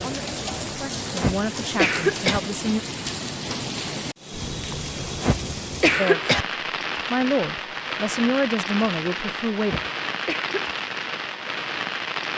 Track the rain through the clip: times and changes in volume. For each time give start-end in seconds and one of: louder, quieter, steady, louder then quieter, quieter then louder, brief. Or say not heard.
0.0-12.3 steady.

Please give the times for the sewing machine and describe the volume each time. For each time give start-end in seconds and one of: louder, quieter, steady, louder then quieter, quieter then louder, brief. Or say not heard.
not heard.